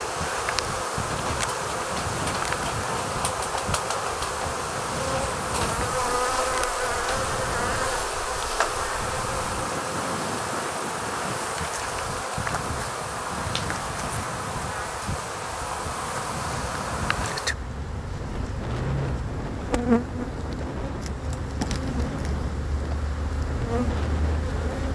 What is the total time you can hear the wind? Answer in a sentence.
The wind can be heard for 25 seconds in total.